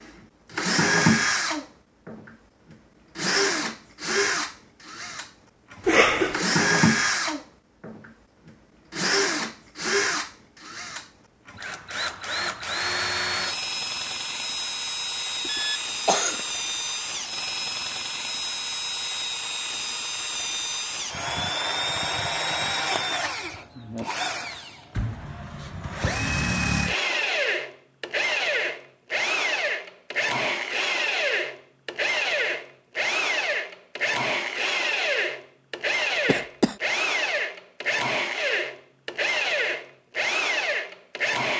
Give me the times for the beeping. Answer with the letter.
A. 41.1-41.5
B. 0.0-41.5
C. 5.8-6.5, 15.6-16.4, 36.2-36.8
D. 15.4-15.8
D.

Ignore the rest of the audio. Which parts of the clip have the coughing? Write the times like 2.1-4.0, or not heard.
5.8-6.5, 15.6-16.4, 36.2-36.8.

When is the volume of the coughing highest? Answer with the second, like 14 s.
6 s.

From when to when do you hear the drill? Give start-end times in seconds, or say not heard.
0.0-41.5.